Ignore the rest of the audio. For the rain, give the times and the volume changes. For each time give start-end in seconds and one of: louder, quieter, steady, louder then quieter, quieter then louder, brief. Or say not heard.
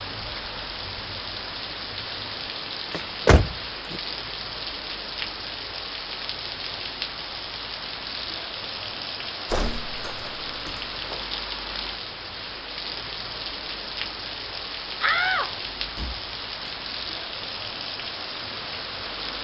0.0-19.3 steady.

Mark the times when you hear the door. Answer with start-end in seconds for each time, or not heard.
2.9-4.0, 9.4-11.2, 15.0-16.7.